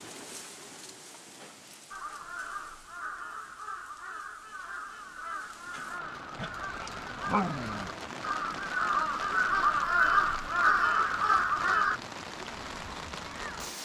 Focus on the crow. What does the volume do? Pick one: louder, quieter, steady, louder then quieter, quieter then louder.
louder.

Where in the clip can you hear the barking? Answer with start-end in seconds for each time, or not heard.
6.3-7.9.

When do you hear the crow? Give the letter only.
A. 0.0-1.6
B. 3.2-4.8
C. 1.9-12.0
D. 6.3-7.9
C.